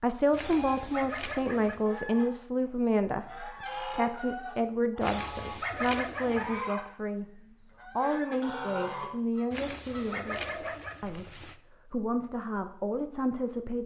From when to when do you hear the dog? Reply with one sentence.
The dog can be heard from 0.3 to 1.9 s, from 5.0 to 6.7 s and from 9.5 to 11.6 s.